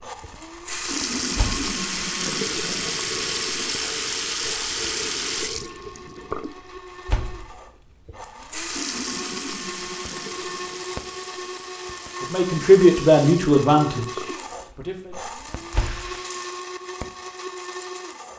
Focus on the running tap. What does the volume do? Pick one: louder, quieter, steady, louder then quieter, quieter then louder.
quieter.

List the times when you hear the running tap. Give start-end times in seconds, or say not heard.
0.0-16.6.